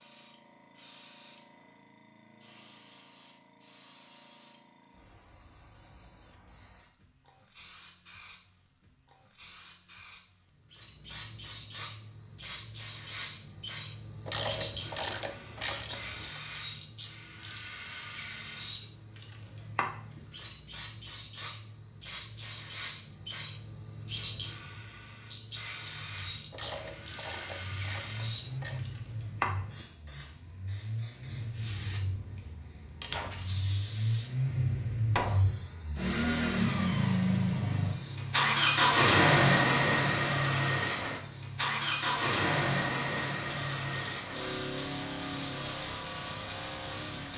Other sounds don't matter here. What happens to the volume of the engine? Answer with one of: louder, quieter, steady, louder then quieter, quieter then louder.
louder then quieter.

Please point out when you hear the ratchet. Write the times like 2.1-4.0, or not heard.
14.2-15.9, 26.5-28.8.